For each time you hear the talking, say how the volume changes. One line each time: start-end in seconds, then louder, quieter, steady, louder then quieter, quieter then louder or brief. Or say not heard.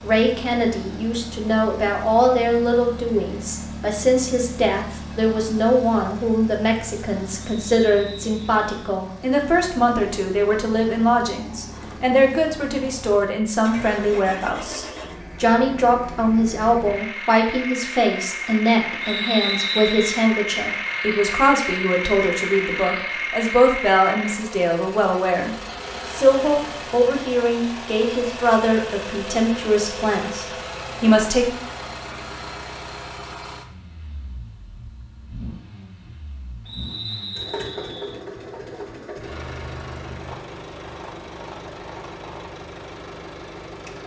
0.0-31.4 steady.